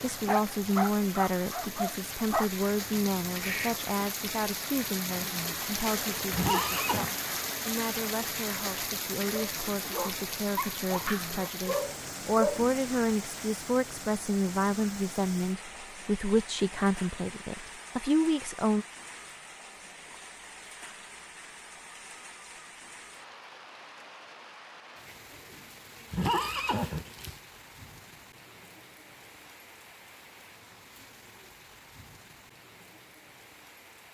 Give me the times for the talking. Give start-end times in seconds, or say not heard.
0.0-18.9.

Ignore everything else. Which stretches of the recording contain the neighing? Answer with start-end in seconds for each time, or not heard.
6.3-7.1, 26.1-27.4.